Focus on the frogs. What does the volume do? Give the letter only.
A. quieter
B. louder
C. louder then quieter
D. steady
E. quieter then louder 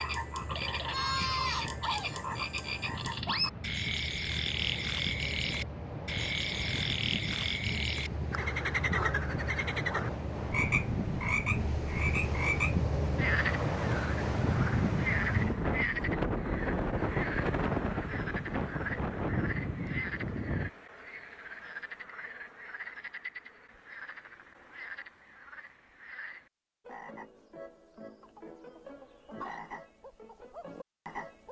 A.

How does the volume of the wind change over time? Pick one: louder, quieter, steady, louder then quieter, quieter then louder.
louder.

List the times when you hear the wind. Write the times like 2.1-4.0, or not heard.
0.0-20.7.